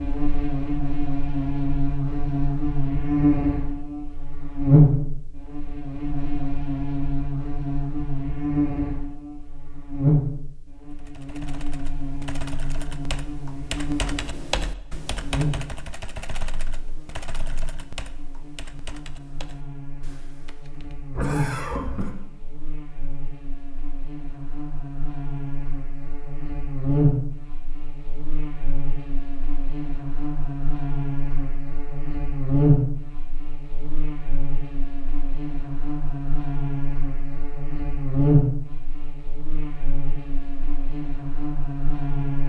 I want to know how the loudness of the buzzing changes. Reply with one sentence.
The loudness of the buzzing goes down, then up.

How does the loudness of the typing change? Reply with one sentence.
The volume of the typing goes up, then down.